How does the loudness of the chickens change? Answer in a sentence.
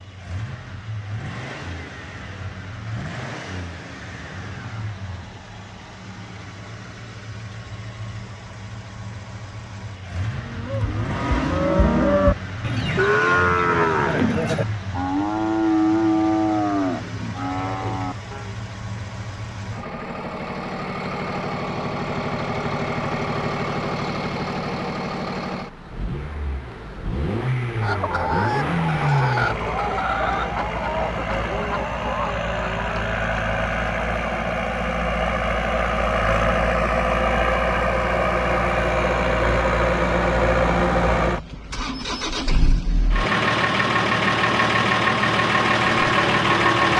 The volume of the chickens goes down.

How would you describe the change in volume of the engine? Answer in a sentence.
The loudness of the engine goes up.